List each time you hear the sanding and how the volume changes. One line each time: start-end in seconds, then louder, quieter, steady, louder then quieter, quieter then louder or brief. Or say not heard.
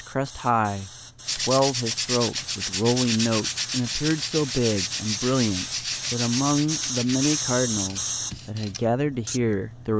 1.2-9.4 quieter.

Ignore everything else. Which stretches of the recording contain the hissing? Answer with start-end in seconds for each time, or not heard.
0.0-8.3.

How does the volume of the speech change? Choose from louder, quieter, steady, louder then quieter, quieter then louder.
steady.